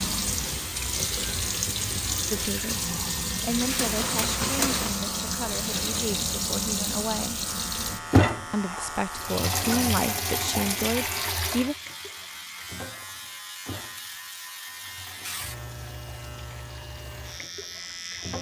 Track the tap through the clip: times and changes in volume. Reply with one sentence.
You can hear the tap from 0.0 to 18.3 s, getting quieter.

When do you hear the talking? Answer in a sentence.
The talking can be heard from 2.3 to 7.4 s and from 8.5 to 11.8 s.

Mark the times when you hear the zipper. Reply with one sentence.
You can't hear the zipper here.